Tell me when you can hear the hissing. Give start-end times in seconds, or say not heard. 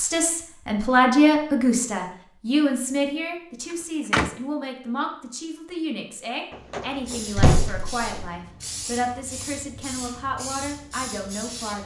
6.9-11.8.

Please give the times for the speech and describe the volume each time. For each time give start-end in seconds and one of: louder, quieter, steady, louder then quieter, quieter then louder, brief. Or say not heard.
0.0-11.8 quieter.